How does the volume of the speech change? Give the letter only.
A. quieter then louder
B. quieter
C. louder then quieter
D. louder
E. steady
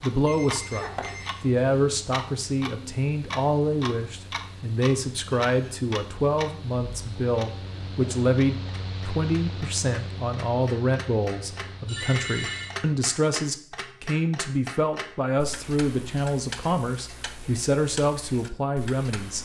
E.